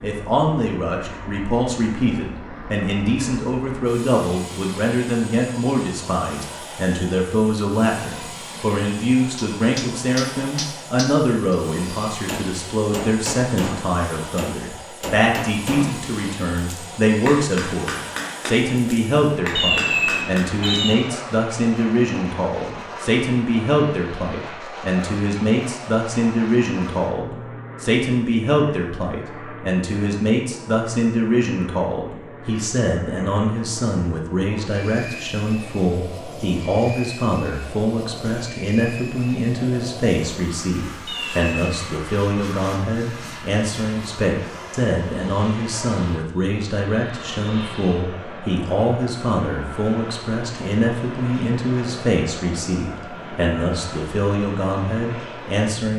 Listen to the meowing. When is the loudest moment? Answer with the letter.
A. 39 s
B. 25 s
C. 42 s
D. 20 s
D.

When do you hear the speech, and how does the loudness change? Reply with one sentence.
You can hear the speech from 0.0 to 55.9 s, at a steady volume.